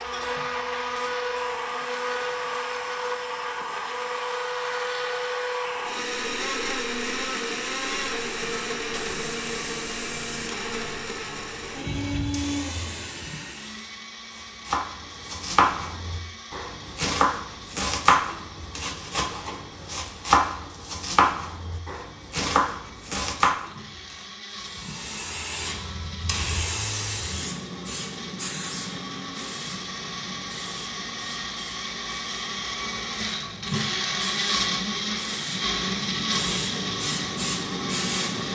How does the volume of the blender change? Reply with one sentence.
The loudness of the blender goes down, then up.